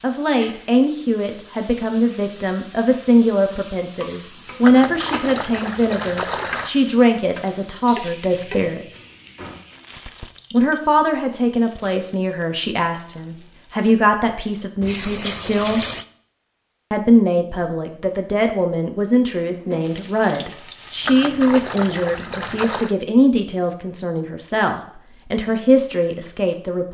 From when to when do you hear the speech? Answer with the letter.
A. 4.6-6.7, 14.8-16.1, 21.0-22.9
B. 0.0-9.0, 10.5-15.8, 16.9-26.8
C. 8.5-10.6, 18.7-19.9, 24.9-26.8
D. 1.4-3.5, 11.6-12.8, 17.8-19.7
B.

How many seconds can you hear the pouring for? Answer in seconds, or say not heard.
5 s.